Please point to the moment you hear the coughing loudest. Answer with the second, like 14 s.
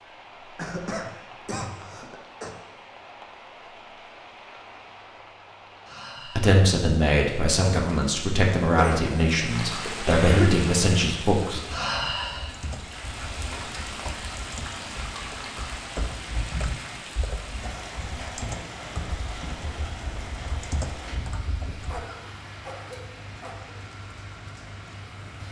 10 s.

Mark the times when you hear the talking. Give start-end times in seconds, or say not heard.
6.3-11.6.